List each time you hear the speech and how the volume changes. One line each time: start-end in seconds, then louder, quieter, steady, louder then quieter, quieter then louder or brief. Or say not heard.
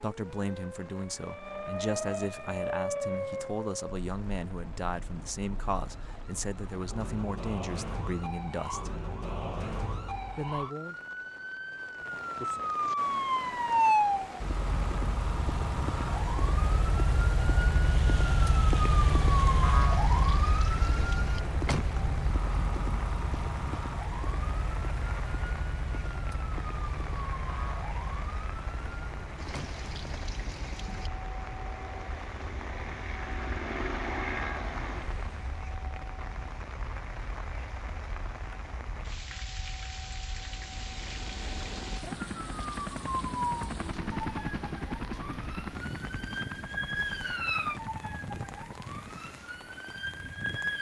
0.0-9.0 steady
10.3-10.9 brief.